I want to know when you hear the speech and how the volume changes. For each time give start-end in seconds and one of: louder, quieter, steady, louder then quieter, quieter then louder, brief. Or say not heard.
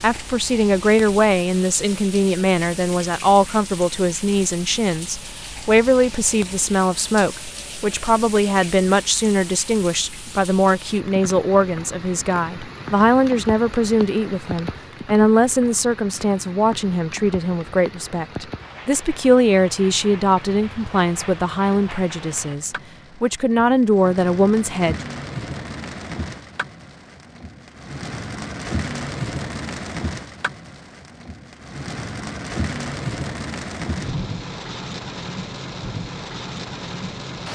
0.0-25.0 steady.